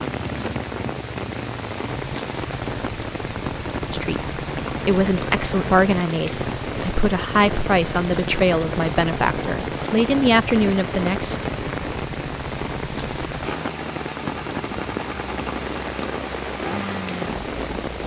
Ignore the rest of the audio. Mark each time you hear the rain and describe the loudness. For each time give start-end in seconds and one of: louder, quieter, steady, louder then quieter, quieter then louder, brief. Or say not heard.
0.0-18.0 steady.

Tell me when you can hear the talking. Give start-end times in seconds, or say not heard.
3.9-11.4.